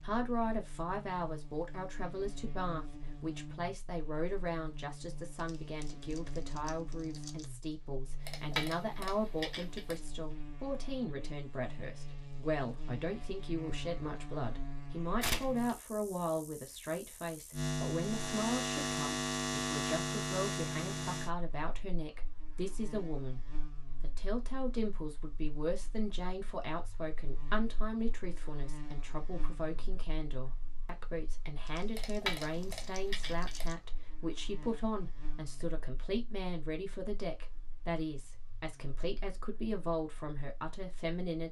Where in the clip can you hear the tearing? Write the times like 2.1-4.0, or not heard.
5.3-7.5, 15.2-15.7, 31.6-33.8.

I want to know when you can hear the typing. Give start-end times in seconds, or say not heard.
8.2-10.0, 31.9-33.7.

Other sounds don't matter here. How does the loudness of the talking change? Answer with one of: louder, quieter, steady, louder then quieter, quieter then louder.
steady.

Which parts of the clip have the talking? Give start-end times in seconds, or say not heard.
0.0-23.4, 24.0-41.4.